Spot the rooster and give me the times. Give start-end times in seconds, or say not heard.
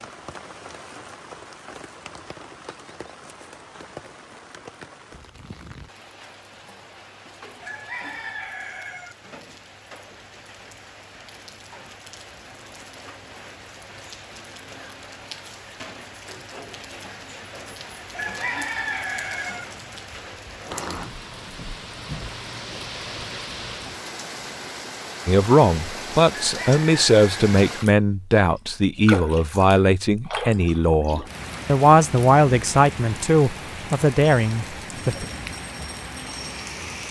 7.6-9.2, 18.1-19.6, 26.4-27.6.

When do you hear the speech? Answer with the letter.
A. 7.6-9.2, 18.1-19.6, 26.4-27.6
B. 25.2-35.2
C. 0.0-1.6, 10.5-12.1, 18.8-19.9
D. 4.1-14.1
B.